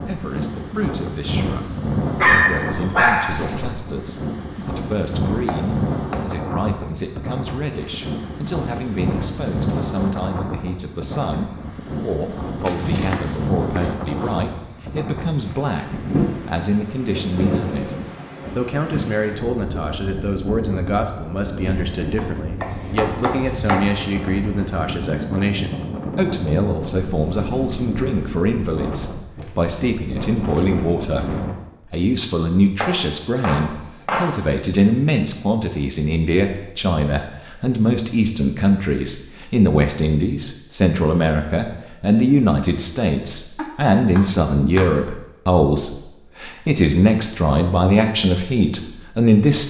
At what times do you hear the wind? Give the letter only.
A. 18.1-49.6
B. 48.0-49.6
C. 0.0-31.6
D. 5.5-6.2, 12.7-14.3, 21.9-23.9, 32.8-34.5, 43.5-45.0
C.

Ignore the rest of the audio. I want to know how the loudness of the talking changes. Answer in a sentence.
The loudness of the talking goes up.